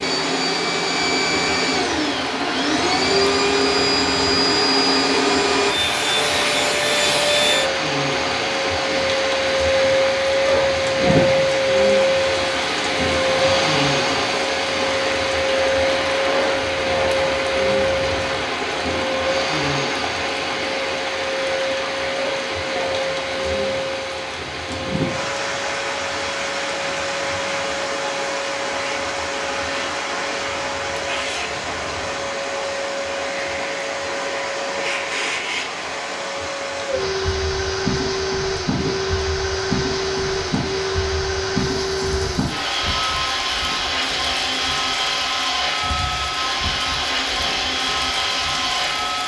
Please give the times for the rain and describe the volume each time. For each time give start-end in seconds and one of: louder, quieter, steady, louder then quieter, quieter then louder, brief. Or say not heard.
0.0-49.2 quieter.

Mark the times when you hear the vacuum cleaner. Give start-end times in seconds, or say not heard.
0.0-49.2.